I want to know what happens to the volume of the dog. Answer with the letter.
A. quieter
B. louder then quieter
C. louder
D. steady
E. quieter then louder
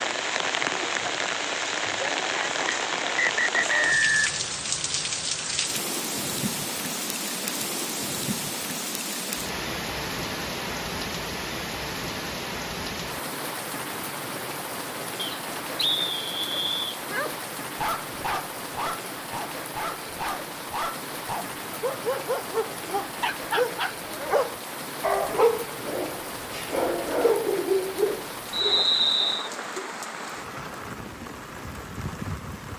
C.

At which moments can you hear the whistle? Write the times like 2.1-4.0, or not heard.
2.6-4.3, 15.2-17.0, 28.5-29.5.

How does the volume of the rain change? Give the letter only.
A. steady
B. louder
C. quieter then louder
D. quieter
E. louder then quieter
D.